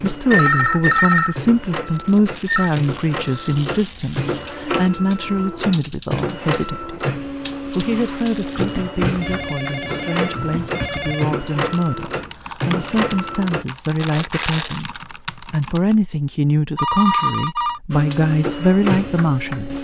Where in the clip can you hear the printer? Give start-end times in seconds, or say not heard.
0.0-13.7, 17.9-19.8.